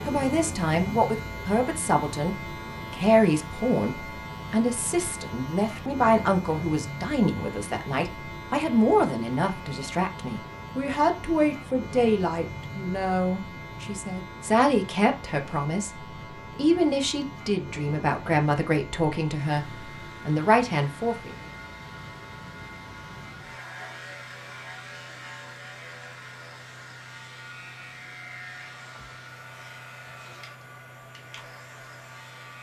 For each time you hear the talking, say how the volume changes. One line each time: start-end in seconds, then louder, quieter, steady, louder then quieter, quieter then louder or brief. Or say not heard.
0.1-21.4 steady.